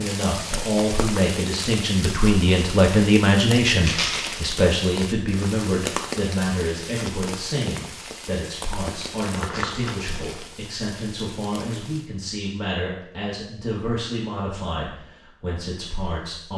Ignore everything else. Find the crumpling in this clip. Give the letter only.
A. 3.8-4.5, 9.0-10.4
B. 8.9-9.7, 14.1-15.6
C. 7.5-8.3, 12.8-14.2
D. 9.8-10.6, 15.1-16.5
A.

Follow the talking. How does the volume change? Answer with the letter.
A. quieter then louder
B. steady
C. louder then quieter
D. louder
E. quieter
E.